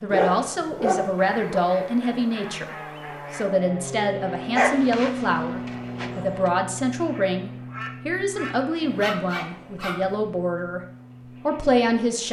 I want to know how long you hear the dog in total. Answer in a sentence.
You can hear the dog for 5 seconds altogether.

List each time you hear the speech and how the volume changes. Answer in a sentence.
You can hear the speech from 0.0 to 10.8 s, at a steady volume; and briefly from 11.4 to 12.2 s.